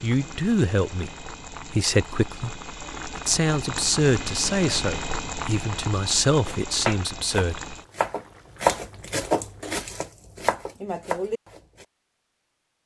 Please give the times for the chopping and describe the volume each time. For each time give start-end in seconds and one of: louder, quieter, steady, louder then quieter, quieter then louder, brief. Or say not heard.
6.5-11.8 louder then quieter.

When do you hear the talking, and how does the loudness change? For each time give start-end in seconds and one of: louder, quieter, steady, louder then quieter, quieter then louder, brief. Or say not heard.
0.0-7.6 steady.